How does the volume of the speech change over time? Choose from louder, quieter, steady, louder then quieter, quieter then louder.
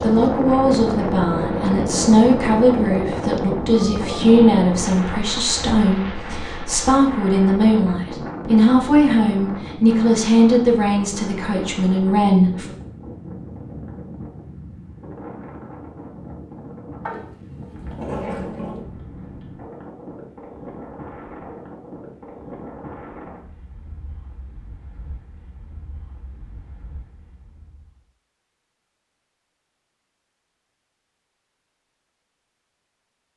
steady.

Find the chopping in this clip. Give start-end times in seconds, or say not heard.
not heard.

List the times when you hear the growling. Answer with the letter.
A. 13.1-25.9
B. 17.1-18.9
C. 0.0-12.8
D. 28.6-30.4
B.